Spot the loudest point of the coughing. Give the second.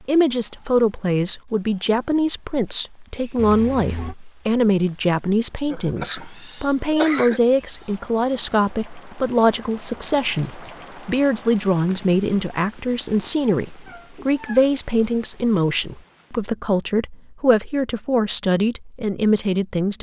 7 s.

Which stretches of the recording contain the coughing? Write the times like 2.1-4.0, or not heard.
5.7-7.4.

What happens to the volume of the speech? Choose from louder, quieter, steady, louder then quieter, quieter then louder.
steady.